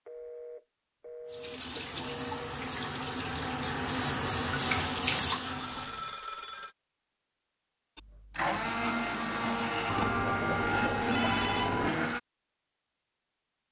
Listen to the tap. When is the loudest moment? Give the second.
5 s.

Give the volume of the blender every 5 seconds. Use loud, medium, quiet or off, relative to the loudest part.
off, loud, loud.